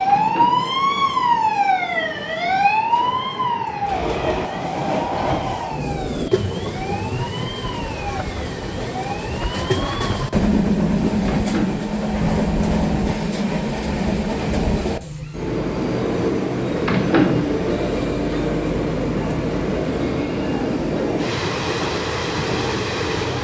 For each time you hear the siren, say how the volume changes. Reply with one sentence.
The siren can be heard from 0.0 to 10.3 s, getting quieter.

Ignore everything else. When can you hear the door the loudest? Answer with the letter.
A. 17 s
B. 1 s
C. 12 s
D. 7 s
A.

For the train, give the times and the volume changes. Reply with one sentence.
You can hear the train from 0.0 to 23.3 s, getting louder.